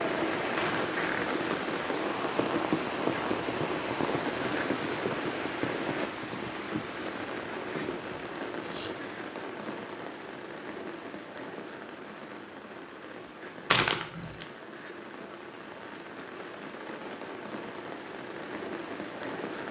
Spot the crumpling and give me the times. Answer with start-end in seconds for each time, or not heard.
0.6-1.1, 13.7-14.4.